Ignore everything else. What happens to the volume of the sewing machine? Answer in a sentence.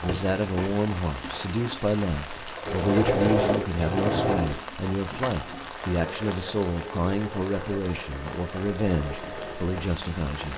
The loudness of the sewing machine goes up, then down.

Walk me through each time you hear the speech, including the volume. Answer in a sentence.
You can hear the speech from 0.0 to 10.5 s, at a steady volume.